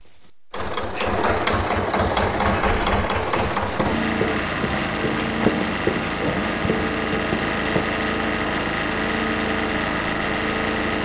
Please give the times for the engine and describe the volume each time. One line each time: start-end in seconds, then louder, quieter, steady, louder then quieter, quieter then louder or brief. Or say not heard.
0.0-11.0 steady.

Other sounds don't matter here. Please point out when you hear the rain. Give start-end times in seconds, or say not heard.
not heard.